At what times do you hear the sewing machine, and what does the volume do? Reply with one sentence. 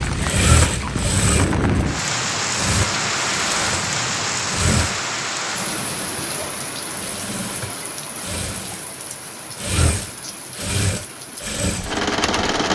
You can hear the sewing machine from 0.0 to 12.6 s, getting quieter then louder.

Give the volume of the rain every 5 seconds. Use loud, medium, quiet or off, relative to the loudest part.
loud, medium, quiet.